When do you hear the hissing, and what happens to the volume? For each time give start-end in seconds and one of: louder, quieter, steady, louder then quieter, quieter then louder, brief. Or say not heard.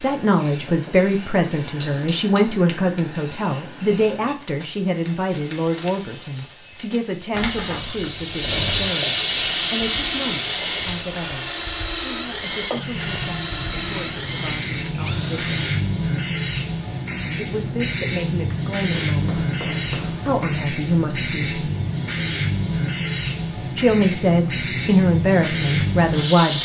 0.0-26.6 louder.